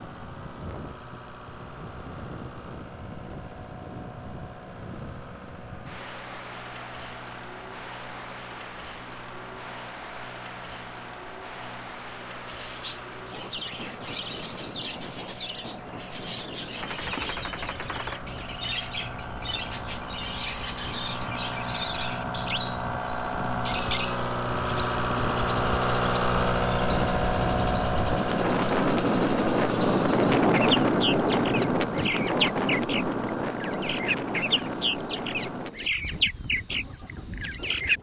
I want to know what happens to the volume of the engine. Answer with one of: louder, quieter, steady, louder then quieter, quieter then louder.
louder then quieter.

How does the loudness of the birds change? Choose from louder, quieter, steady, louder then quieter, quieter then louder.
louder.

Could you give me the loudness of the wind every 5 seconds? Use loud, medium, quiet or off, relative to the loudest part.
quiet, quiet, quiet, quiet, quiet, loud, loud, quiet.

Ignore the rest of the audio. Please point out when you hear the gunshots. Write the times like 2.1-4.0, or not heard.
16.8-18.4.